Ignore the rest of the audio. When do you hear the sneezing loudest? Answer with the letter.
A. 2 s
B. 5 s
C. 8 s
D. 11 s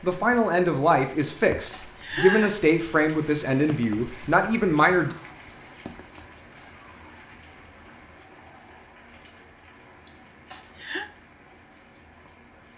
A.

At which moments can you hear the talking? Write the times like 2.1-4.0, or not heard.
0.0-5.2.